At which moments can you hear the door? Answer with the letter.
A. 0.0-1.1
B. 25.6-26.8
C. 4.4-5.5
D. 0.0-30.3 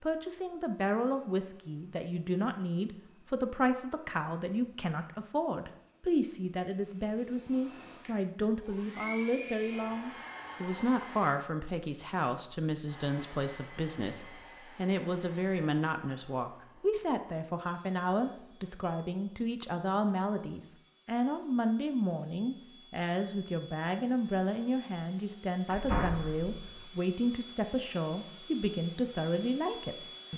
B.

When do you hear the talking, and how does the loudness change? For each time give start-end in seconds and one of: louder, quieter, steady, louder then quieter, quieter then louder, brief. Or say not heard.
0.0-30.3 steady.